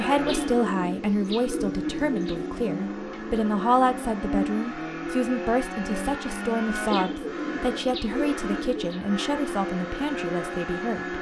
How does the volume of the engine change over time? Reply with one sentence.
The loudness of the engine stays about the same.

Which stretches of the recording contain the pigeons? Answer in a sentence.
The pigeons can be heard from 0.2 to 2.4 s and from 6.9 to 8.9 s.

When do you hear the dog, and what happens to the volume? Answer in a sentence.
You can't hear the dog here.